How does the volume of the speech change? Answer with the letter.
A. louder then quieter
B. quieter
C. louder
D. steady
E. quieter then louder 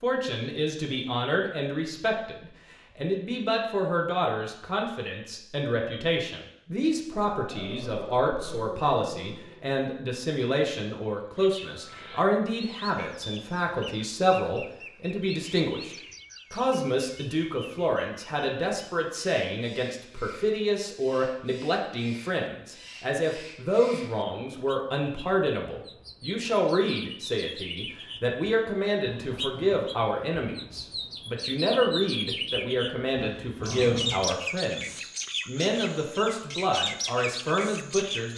D.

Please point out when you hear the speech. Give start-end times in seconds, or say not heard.
0.0-38.3.